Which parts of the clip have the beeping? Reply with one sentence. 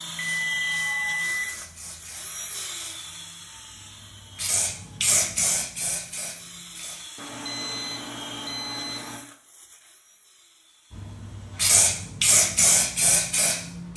The beeping can be heard from 0.1 to 2.1 s and from 7.2 to 9.2 s.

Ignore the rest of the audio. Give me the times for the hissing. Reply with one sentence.
You can hear the hissing from 0.0 to 7.0 s and from 10.9 to 13.9 s.